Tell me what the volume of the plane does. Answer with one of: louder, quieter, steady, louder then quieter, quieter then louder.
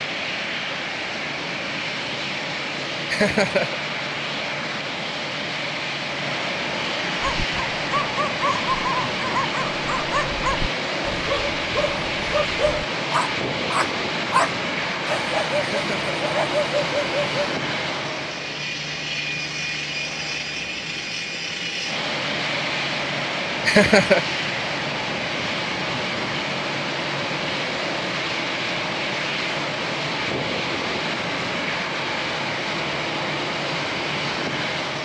steady.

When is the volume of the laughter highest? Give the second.
24 s.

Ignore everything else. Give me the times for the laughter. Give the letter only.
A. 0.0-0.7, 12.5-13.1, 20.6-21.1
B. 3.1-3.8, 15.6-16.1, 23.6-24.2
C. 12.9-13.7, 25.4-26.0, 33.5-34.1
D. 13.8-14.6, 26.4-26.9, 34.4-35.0
B.